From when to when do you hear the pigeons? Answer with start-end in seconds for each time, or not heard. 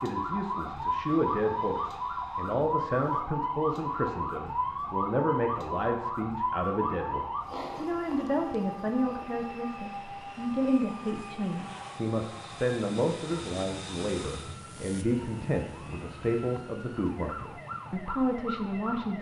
not heard.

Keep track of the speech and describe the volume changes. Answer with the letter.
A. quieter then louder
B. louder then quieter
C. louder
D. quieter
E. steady
E.